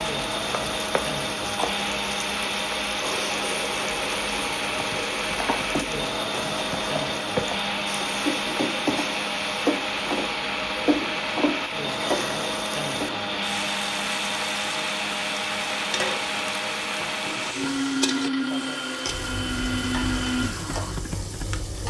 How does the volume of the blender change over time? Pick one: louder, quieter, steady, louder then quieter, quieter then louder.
steady.